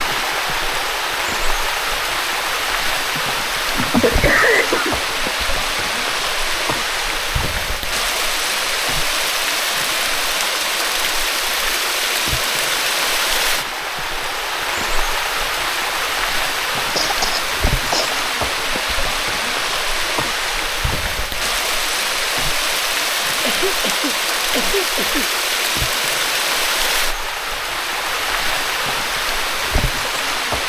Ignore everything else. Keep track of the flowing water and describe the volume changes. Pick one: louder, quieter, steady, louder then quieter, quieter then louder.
steady.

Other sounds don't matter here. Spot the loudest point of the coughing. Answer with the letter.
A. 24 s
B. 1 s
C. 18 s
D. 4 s
D.